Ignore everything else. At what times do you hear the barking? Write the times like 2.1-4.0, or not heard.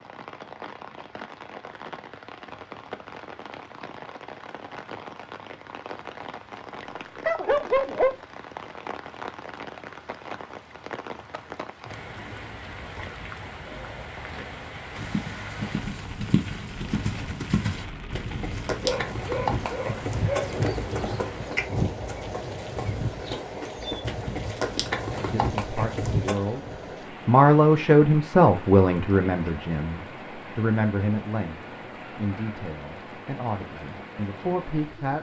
7.2-8.2, 18.8-20.6.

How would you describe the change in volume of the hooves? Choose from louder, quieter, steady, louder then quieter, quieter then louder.
steady.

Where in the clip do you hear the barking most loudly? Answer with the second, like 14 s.
8 s.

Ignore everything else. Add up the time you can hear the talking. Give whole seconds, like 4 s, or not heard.
10 s.